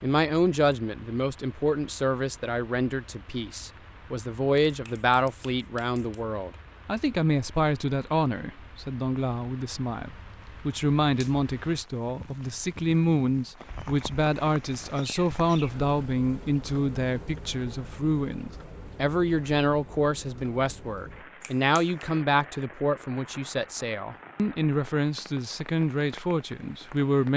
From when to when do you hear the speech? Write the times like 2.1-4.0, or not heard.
0.0-27.3.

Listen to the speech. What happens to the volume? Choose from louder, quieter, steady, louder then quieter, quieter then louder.
steady.